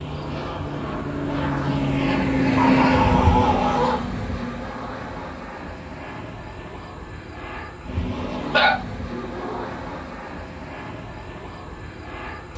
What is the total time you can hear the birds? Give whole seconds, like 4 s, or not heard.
not heard.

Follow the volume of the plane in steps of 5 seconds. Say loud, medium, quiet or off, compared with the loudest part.
loud, medium, quiet.